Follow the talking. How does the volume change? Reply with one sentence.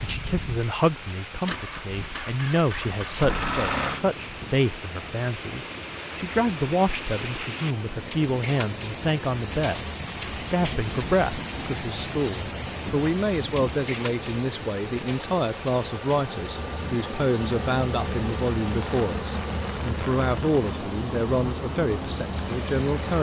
The volume of the talking stays about the same.